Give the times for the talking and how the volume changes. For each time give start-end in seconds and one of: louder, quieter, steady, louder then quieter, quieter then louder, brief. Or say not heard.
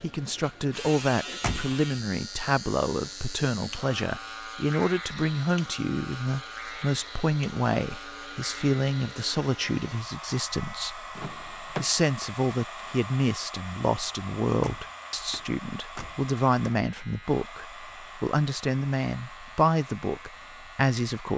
0.0-21.3 steady.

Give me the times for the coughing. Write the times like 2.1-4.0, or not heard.
not heard.